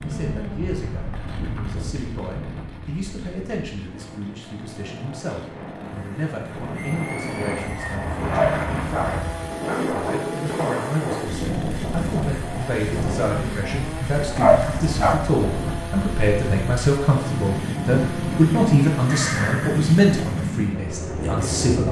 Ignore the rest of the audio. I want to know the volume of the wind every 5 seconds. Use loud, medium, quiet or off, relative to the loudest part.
medium, loud, loud, loud, loud.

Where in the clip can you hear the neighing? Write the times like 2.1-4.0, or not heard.
6.8-8.1, 19.1-19.8.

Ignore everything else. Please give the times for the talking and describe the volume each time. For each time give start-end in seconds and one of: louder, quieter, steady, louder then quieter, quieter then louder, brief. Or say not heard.
0.0-21.8 louder.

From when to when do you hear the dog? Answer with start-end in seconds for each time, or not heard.
8.2-9.2, 14.3-15.2.